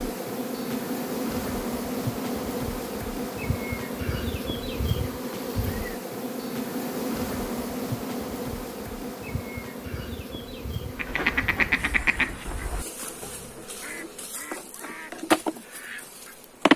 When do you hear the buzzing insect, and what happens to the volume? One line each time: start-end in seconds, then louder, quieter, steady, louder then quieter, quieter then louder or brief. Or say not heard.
0.0-16.7 quieter then louder.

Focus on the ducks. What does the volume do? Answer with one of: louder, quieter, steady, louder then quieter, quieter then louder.
quieter.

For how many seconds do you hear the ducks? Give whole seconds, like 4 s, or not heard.
6 s.